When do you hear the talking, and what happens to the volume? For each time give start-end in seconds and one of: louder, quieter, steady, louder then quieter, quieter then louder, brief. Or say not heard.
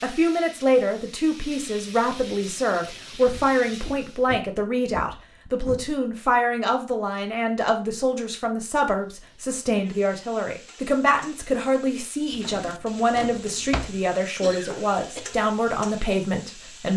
0.0-16.9 steady.